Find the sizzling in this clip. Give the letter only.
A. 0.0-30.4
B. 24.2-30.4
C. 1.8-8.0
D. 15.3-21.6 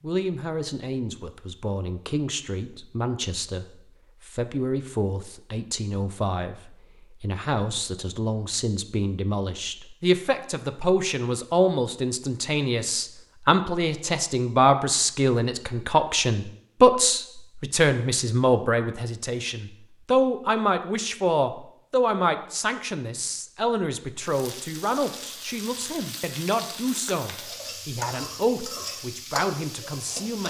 B.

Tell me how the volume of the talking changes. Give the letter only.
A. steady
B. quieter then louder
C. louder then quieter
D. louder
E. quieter
C.